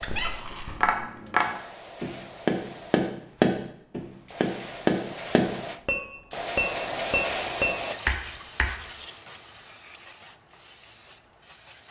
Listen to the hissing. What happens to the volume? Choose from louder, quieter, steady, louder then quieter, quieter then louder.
louder then quieter.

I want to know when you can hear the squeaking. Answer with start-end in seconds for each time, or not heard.
0.0-1.0.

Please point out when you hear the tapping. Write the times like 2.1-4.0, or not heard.
0.7-8.8.